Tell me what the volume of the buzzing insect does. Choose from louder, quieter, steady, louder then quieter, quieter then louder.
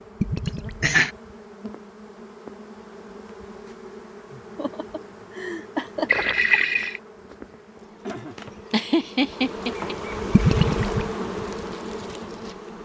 louder.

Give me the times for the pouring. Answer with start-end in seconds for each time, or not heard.
0.2-0.9, 6.1-7.0, 10.3-11.1.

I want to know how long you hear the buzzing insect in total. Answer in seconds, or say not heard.
13 s.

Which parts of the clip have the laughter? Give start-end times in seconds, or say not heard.
0.5-1.1, 4.5-6.6, 8.7-9.9.